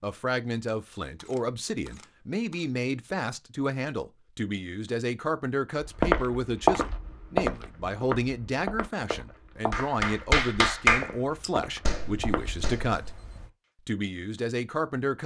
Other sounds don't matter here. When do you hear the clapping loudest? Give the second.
11 s.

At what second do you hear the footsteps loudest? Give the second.
7 s.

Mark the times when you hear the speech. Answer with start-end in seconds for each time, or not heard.
0.0-13.1, 13.8-15.2.